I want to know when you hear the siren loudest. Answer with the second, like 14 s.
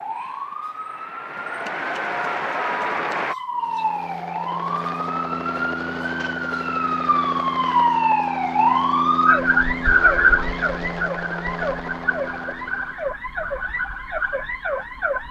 10 s.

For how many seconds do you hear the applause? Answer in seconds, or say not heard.
3 s.